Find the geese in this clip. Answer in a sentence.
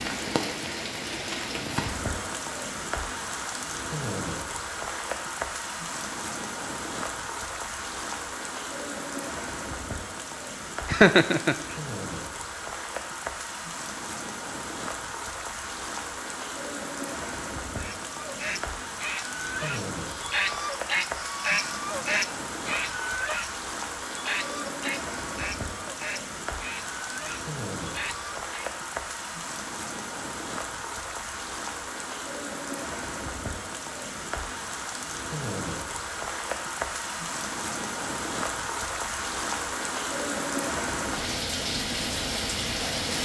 You can hear the geese from 17.8 to 28.7 s.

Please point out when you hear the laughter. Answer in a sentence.
You can hear the laughter from 10.8 to 11.6 s.